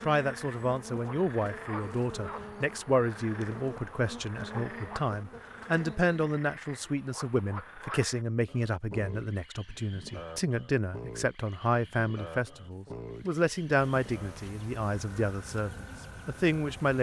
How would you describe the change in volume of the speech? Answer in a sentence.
The volume of the speech stays about the same.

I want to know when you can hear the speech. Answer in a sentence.
You can hear the speech from 0.0 to 16.9 s.